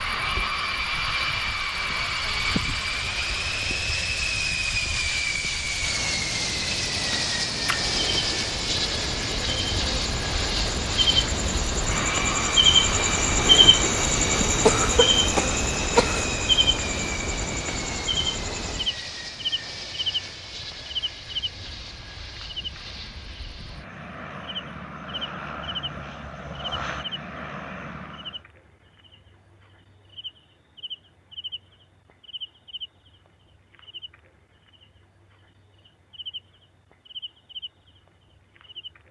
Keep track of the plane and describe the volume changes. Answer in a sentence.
The loudness of the plane goes down.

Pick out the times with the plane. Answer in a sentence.
You can hear the plane from 0.0 to 28.4 s.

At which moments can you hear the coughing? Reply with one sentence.
You can hear the coughing from 14.6 to 16.3 s.